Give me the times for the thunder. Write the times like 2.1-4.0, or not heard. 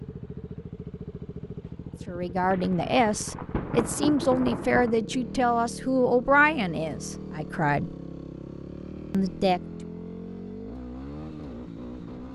2.5-5.0.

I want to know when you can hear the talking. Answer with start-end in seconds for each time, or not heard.
2.0-8.0, 9.1-9.6.